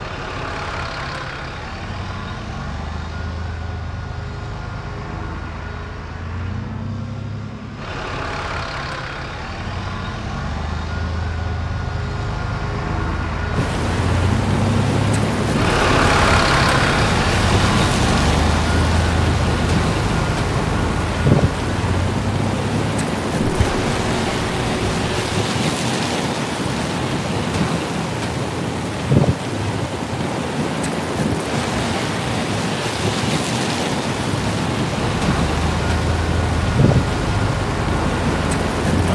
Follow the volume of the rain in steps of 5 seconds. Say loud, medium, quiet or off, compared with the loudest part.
off, off, loud, loud, loud, loud, loud, loud.